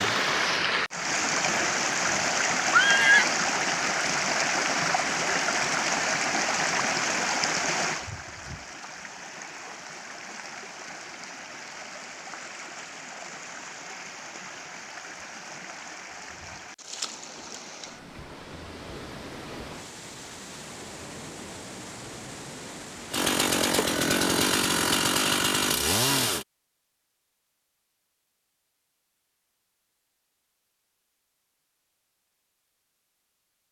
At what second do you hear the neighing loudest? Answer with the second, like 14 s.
3 s.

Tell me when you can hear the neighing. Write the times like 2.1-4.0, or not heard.
1.4-3.2.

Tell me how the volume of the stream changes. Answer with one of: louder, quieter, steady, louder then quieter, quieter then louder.
quieter.